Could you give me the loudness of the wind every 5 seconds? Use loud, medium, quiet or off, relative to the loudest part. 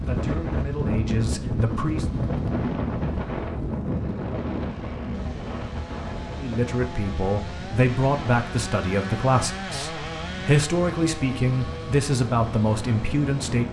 loud, medium, medium.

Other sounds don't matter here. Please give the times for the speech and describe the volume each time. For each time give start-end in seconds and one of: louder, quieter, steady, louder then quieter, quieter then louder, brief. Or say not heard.
0.0-2.0 brief
6.4-13.6 steady.